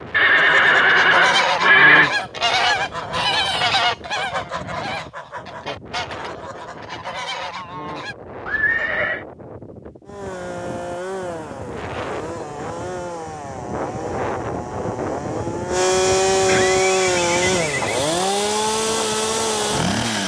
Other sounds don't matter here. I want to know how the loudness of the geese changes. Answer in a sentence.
The volume of the geese goes down.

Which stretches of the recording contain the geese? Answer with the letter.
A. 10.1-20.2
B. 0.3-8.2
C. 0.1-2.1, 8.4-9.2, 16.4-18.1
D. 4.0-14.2
B.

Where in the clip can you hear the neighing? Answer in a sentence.
The neighing can be heard from 0.1 to 2.1 s, from 8.4 to 9.2 s and from 16.4 to 18.1 s.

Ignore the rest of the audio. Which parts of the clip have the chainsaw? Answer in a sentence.
The chainsaw can be heard from 10.1 to 20.2 s.